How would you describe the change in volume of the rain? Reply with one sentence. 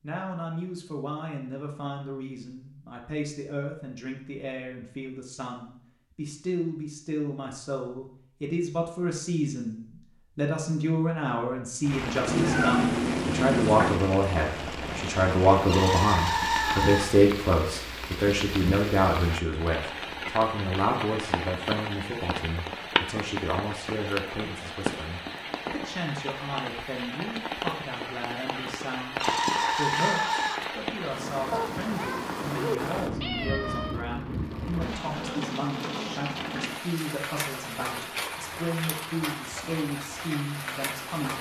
The volume of the rain stays about the same.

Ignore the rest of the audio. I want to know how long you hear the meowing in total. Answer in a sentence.
The meowing can be heard for 4 seconds in total.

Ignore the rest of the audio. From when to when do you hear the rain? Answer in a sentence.
The rain can be heard from 11.8 to 41.3 s.